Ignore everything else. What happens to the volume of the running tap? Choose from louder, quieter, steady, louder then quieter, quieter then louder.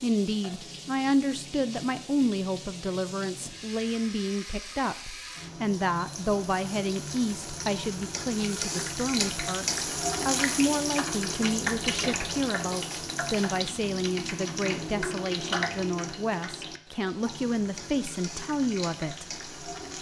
louder then quieter.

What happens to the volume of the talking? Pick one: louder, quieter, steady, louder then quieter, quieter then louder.
steady.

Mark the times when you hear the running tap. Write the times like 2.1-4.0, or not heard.
0.0-19.9.